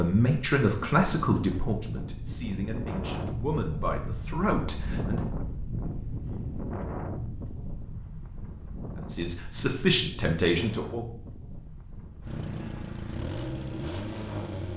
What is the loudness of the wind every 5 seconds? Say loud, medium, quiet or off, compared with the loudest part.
loud, loud, medium.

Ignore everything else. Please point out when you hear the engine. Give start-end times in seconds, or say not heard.
12.2-14.7.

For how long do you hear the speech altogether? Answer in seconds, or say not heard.
7 s.